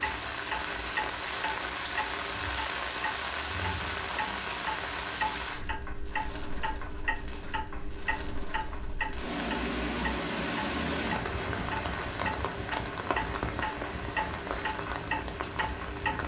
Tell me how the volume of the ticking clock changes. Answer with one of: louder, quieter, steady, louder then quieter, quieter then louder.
steady.